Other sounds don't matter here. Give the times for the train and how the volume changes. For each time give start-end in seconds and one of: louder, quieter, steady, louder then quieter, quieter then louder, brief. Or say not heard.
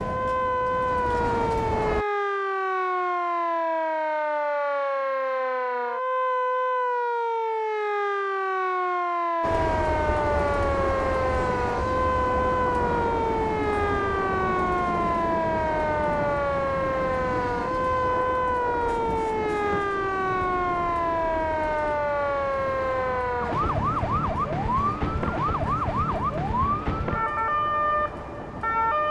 0.0-2.0 brief
9.4-29.0 quieter.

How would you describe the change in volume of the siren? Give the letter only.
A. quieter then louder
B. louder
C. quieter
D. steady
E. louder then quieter
D.